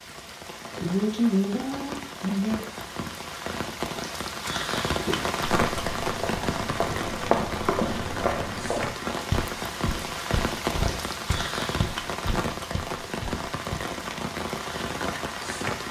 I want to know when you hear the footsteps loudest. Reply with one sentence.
The loudest moment of the footsteps is at 7 seconds.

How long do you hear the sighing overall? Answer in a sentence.
You can hear the sighing for 2 seconds altogether.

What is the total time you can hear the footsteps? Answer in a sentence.
You can hear the footsteps for 9 seconds altogether.